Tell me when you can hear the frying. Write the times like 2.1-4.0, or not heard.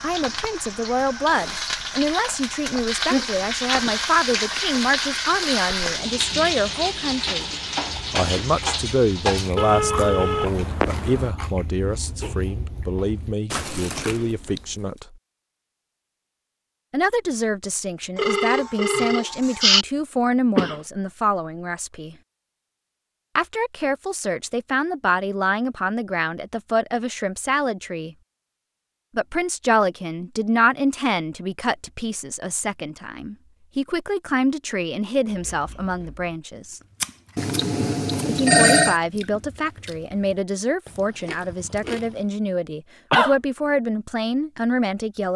0.0-9.5.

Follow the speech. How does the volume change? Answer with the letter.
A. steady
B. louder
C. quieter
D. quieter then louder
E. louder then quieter
A.